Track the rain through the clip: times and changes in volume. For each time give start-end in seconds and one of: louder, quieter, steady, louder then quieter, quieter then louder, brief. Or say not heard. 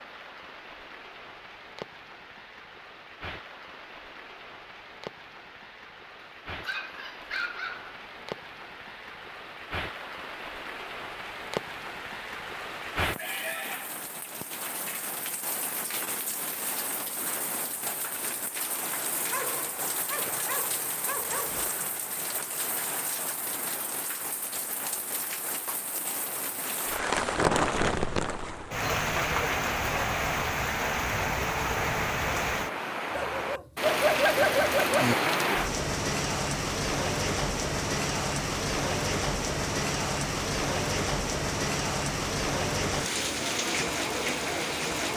0.0-45.1 louder.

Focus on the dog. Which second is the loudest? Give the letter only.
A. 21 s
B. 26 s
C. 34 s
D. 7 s
C.